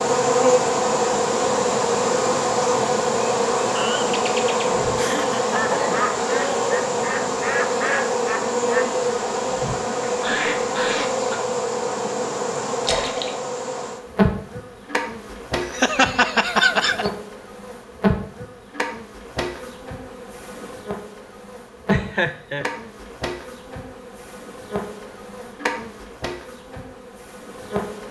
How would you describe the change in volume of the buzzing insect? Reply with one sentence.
The loudness of the buzzing insect goes down.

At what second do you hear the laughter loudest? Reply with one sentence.
The volume of the laughter peaks at 17 seconds.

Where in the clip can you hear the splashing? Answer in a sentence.
The splashing can be heard from 12.8 to 13.3 s.